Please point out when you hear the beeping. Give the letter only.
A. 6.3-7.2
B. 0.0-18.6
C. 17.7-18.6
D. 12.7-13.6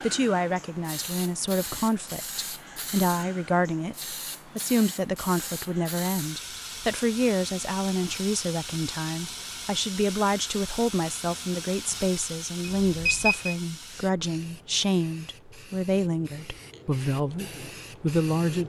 D.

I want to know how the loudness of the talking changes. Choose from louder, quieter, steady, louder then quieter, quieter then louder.
steady.